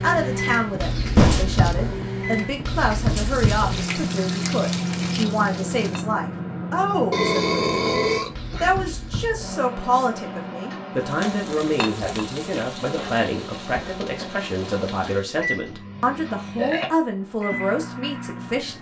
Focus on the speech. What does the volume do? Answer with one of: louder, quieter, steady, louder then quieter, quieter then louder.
steady.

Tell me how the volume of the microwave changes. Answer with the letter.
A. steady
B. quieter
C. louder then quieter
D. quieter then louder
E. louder
B.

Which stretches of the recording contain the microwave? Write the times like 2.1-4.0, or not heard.
0.0-18.7.